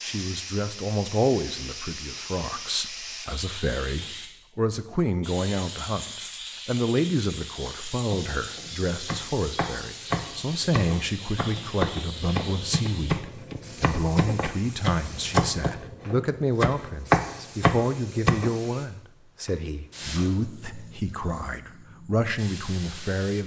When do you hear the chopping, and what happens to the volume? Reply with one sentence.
The chopping can be heard from 8.0 to 18.5 s, getting louder.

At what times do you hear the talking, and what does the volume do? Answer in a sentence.
The talking can be heard from 0.0 to 23.4 s, at a steady volume.